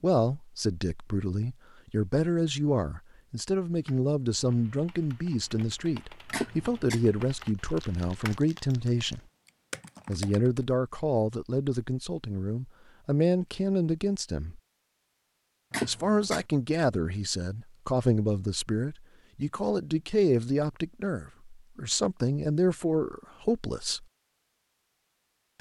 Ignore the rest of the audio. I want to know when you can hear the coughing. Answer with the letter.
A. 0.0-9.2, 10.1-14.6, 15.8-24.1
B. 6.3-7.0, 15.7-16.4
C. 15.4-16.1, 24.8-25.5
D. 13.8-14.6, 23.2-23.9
B.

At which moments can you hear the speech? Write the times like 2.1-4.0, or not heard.
0.0-9.2, 10.1-14.6, 15.8-24.1.